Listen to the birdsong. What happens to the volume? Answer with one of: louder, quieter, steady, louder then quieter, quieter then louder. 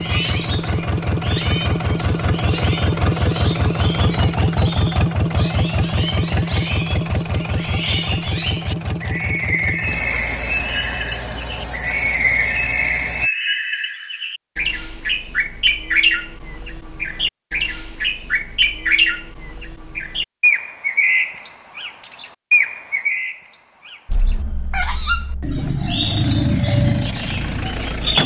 louder.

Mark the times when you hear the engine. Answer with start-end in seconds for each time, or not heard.
0.0-13.3, 24.1-28.2.